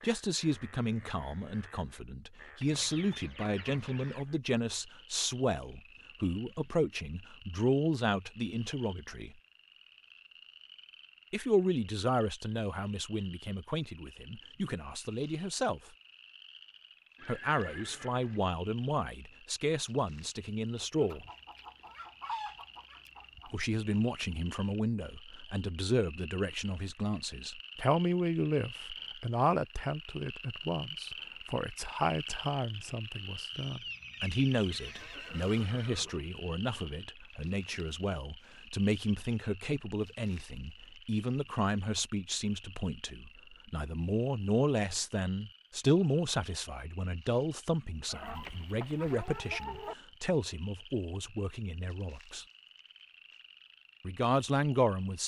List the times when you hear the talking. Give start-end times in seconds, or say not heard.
0.0-9.3, 11.3-15.8, 17.2-21.2, 23.4-52.5, 54.0-55.2.